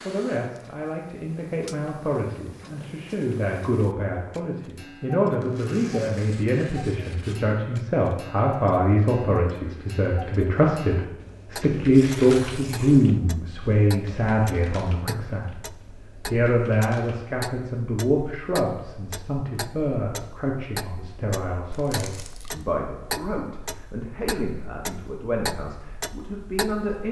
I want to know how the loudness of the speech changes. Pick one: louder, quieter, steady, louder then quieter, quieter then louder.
louder then quieter.